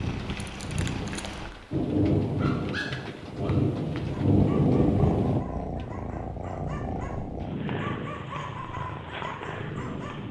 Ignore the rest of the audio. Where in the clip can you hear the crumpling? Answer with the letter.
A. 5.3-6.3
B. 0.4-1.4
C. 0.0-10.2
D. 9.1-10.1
B.